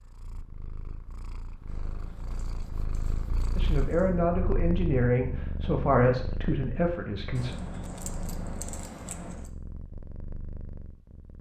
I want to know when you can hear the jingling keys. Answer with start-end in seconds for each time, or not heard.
1.6-4.2, 7.3-9.5.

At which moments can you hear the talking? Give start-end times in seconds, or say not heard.
3.5-7.5.